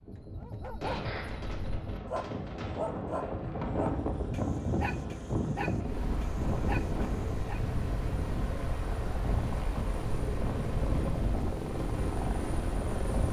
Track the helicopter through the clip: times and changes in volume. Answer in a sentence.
The helicopter can be heard from 1.9 to 13.2 s, getting louder.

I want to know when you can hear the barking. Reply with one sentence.
You can hear the barking from 0.0 to 7.6 s.